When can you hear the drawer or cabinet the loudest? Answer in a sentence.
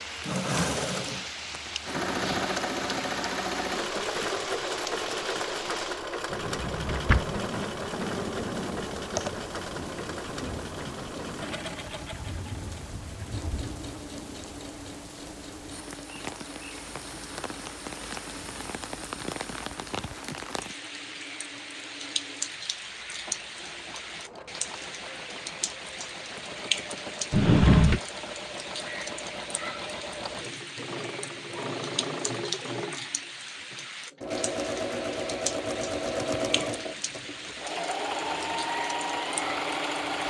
The loudest moment of the drawer or cabinet is at 28 seconds.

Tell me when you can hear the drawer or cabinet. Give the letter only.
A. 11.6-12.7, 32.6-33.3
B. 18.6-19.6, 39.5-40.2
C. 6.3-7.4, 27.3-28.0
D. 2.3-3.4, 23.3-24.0
C.